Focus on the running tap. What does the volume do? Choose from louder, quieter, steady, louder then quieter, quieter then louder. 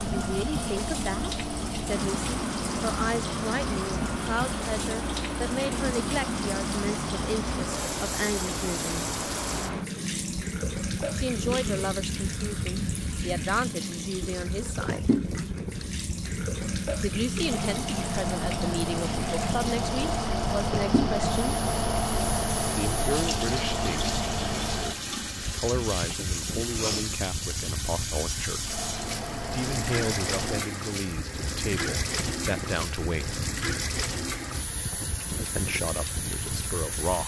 steady.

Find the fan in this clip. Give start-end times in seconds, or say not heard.
0.0-37.2.